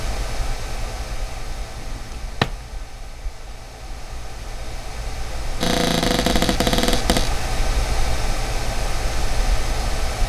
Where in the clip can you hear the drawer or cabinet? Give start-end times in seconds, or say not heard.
1.8-2.6, 5.6-7.3.